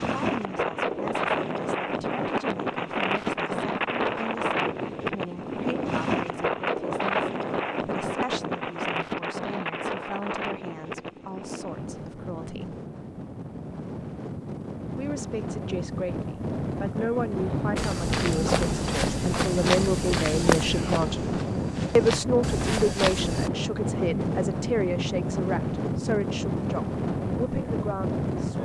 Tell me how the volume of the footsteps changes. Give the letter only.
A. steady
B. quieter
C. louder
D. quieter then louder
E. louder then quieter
D.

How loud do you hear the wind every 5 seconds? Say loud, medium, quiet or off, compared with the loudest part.
loud, loud, medium, loud, loud, loud.